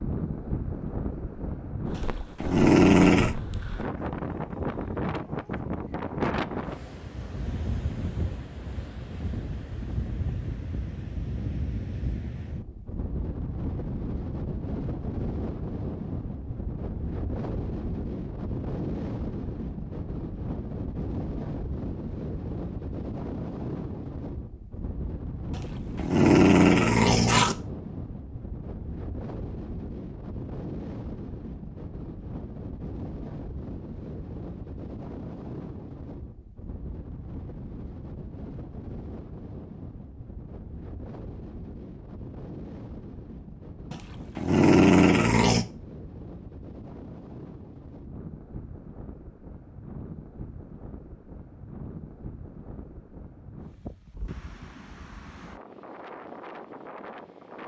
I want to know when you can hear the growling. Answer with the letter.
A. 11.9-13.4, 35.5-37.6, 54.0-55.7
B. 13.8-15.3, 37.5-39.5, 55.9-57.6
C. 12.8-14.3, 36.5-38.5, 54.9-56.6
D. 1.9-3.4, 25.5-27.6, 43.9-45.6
D.